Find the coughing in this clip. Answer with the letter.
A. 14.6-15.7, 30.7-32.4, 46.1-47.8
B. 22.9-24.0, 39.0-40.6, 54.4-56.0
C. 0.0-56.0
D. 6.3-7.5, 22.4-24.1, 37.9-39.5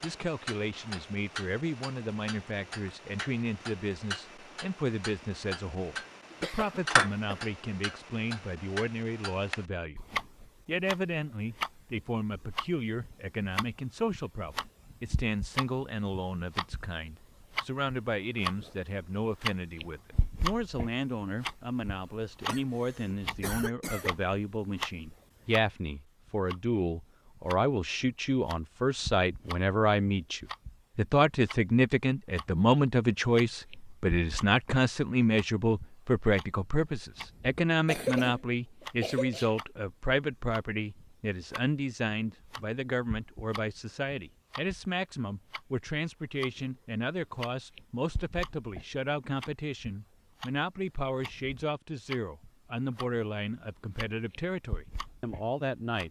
D.